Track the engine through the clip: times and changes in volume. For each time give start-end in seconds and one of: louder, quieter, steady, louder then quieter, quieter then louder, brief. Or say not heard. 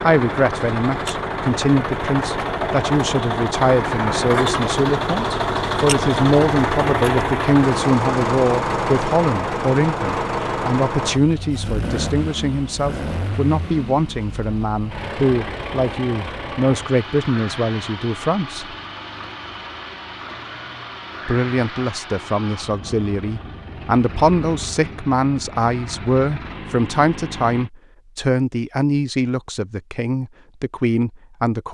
0.0-27.7 quieter.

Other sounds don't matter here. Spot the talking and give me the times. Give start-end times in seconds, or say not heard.
0.0-18.8, 21.2-31.6.